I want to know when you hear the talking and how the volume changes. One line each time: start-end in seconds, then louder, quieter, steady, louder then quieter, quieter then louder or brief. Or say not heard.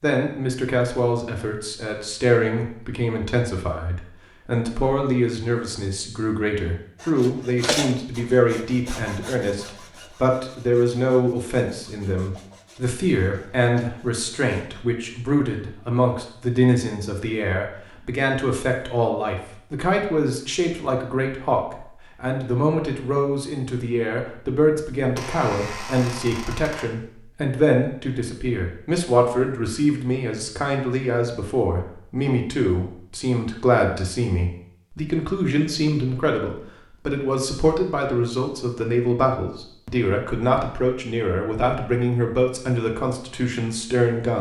0.0-44.3 steady.